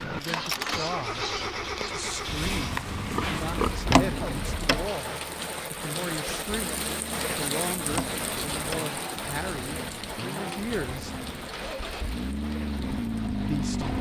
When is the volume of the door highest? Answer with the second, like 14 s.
4 s.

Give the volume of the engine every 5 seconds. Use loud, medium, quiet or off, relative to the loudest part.
loud, medium, loud.